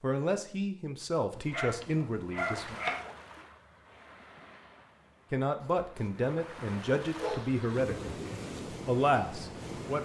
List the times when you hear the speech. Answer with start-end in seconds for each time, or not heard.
0.0-2.8, 5.3-8.2, 8.8-10.0.